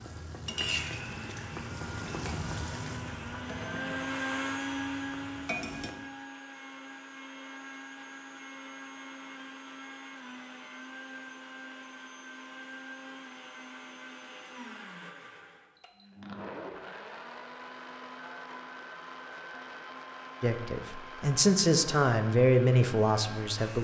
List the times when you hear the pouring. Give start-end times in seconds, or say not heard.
not heard.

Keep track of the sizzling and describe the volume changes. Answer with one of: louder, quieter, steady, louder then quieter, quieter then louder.
quieter.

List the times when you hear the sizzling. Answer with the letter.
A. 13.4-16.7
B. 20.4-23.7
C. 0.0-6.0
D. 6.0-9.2
C.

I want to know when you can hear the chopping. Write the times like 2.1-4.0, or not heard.
not heard.